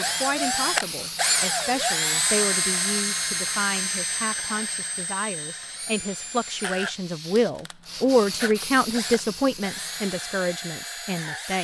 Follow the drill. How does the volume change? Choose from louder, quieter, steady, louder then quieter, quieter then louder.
quieter.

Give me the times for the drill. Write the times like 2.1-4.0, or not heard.
0.0-11.5.